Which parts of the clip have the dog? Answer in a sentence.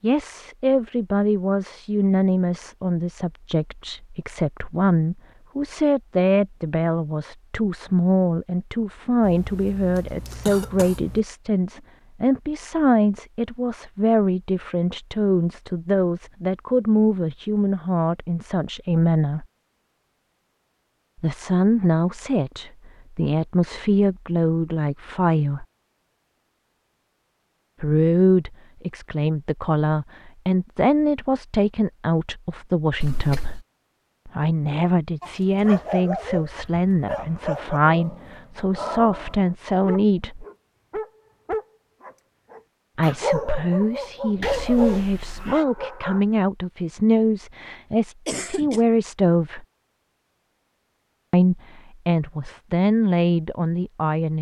You can hear the dog from 35.2 to 46.2 s.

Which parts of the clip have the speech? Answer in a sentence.
You can hear the speech from 0.0 to 19.4 s, from 21.2 to 25.6 s, from 27.8 to 33.6 s, from 34.2 to 40.5 s, from 43.0 to 49.6 s and from 51.3 to 54.3 s.